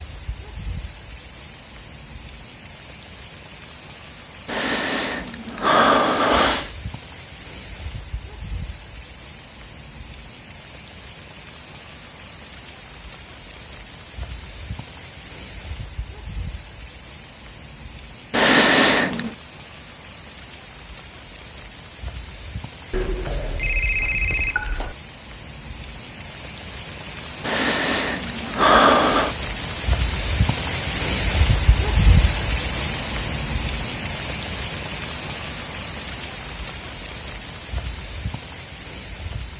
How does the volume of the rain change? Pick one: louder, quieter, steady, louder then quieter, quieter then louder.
louder.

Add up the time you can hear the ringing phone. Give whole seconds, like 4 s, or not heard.
2 s.